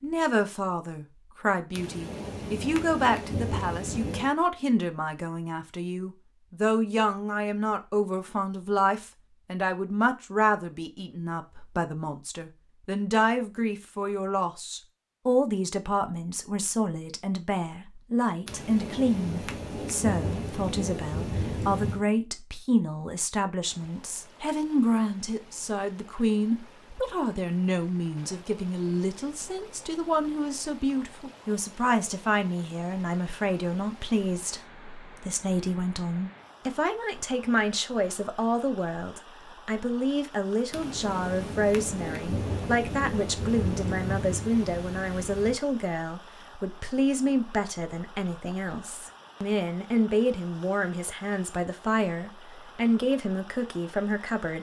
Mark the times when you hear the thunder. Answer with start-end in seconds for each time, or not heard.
1.7-4.3, 18.4-22.1, 40.7-45.6.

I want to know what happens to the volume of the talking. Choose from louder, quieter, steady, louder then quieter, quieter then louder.
steady.